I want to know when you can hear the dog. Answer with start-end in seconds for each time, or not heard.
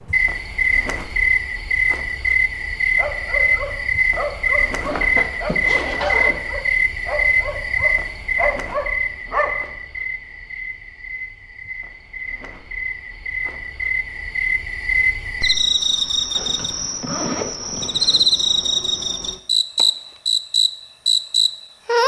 3.0-9.6.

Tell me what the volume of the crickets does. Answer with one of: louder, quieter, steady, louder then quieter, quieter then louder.
quieter then louder.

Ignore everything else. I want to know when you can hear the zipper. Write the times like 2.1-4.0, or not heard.
4.8-6.4, 16.4-18.3.